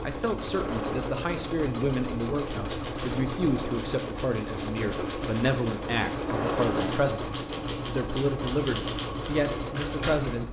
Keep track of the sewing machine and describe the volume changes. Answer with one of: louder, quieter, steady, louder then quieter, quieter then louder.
steady.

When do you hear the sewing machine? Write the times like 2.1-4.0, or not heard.
0.0-10.4.